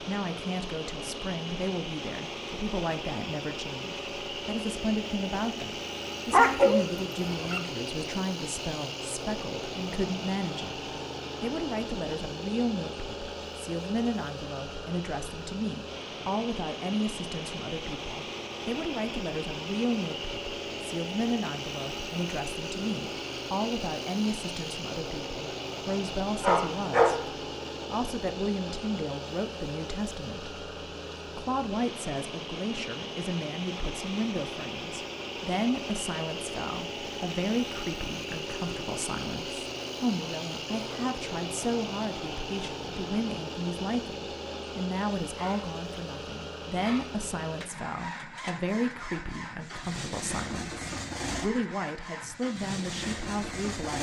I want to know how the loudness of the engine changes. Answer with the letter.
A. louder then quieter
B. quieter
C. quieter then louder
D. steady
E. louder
D.